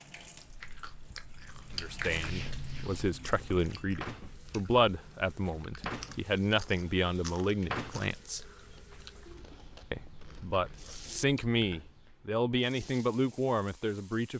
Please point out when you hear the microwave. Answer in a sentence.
You can't hear the microwave here.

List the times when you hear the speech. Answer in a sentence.
You can hear the speech from 1.8 to 8.4 s and from 9.9 to 14.3 s.